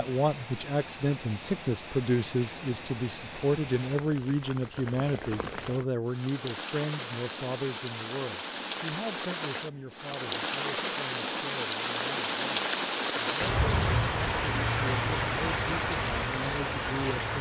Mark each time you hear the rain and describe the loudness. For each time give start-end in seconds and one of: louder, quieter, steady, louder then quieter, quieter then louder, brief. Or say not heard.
0.0-17.3 louder.